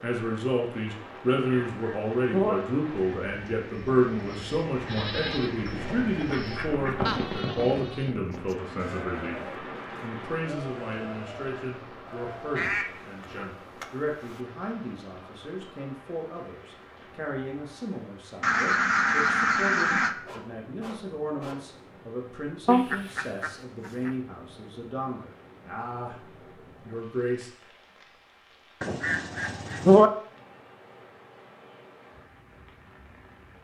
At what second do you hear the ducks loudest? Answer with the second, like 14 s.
30 s.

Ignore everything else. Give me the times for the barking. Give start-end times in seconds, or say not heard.
20.1-21.8.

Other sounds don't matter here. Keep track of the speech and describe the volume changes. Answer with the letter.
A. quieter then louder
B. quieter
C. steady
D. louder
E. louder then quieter
B.